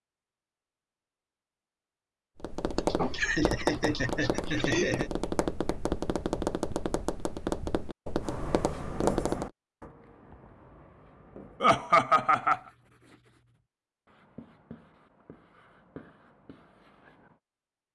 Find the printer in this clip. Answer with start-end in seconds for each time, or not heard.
not heard.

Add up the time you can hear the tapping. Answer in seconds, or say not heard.
7 s.